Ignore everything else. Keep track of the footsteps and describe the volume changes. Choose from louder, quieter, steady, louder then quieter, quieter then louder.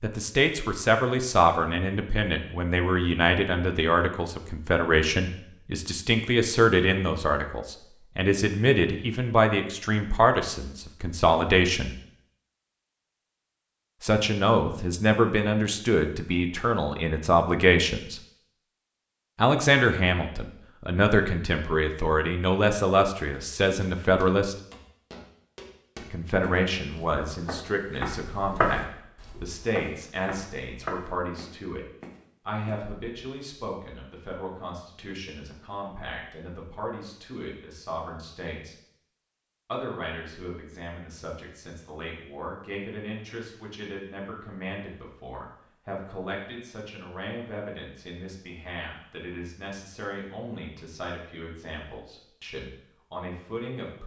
louder then quieter.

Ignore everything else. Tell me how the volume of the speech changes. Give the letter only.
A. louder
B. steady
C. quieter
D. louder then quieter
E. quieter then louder
C.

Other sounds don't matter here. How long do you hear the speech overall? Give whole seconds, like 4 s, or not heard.
48 s.